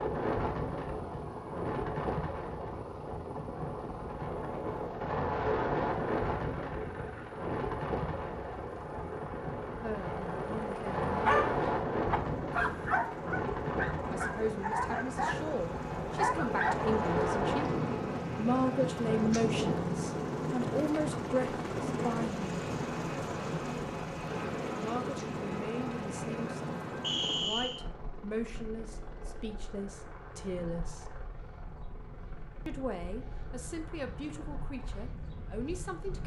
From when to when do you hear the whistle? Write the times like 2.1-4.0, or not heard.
27.0-27.8.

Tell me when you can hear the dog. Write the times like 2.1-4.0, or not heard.
11.2-16.8.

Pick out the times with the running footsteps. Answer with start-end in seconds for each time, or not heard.
not heard.